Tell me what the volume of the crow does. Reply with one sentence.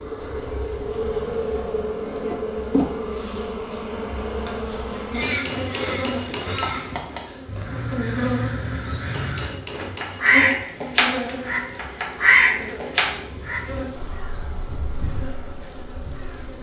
The volume of the crow goes up, then down.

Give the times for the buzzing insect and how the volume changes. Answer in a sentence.
You can hear the buzzing insect from 0.0 to 16.5 s, getting quieter.